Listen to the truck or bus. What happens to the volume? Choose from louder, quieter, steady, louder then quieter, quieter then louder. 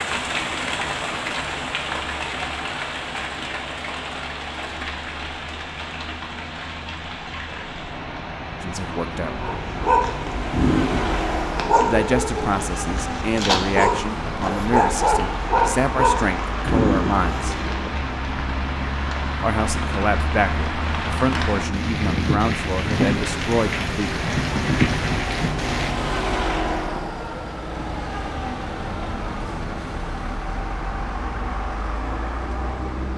louder.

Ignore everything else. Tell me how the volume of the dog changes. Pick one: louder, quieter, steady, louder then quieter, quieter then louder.
steady.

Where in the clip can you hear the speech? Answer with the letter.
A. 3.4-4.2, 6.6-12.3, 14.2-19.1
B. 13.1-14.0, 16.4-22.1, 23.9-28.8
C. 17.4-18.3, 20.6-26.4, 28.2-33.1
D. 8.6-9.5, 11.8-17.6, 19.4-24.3
D.